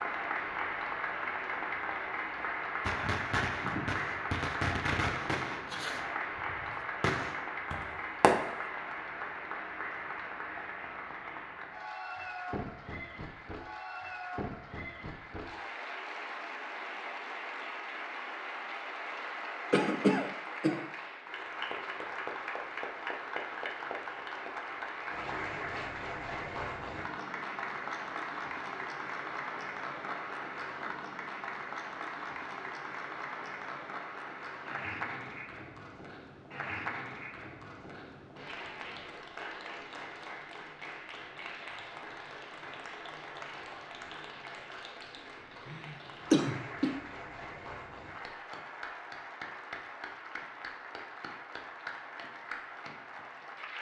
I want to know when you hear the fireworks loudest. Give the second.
8 s.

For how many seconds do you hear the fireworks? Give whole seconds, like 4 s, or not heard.
6 s.